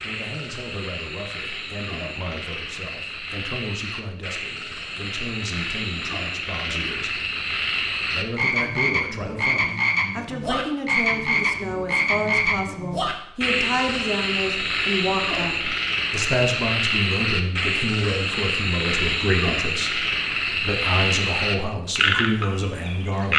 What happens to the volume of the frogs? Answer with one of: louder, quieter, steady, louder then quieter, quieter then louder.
louder.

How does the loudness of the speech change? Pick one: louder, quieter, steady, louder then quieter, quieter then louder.
louder.